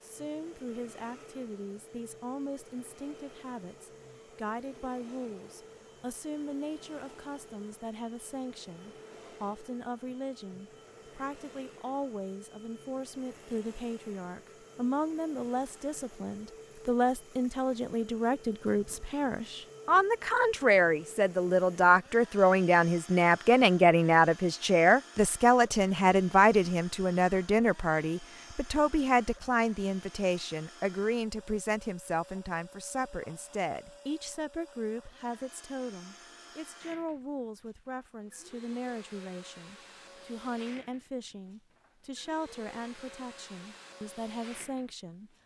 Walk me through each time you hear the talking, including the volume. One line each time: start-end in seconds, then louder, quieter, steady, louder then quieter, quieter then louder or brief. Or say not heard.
0.0-45.3 louder then quieter.